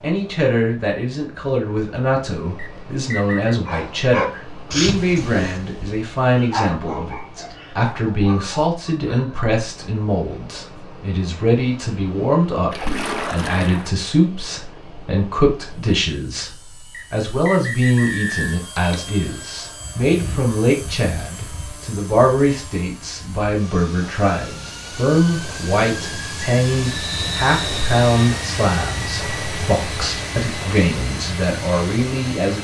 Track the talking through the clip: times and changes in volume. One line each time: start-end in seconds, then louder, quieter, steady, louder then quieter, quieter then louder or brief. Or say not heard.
0.0-32.5 steady.